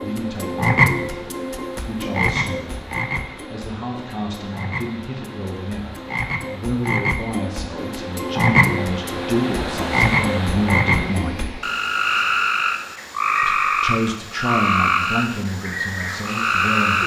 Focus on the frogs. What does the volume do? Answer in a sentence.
The loudness of the frogs goes down, then up.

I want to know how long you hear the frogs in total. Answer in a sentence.
The frogs can be heard for 17 seconds in total.